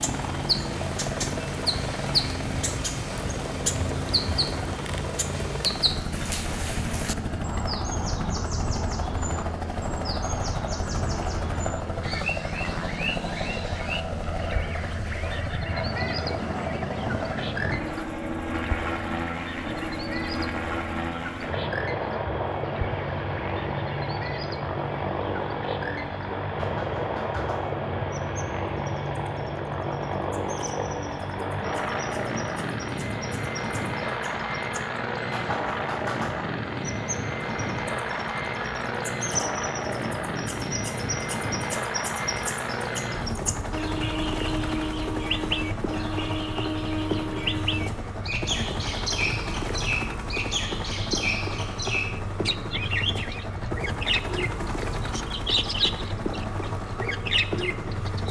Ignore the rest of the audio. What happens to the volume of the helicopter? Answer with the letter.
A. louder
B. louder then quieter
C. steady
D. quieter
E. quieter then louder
C.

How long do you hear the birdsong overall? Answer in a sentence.
You can hear the birdsong for 58 seconds altogether.